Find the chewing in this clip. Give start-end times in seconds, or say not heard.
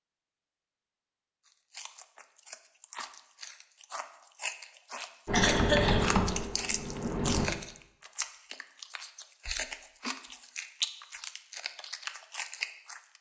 1.4-13.1.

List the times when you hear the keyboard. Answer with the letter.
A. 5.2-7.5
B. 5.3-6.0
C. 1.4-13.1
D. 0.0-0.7
A.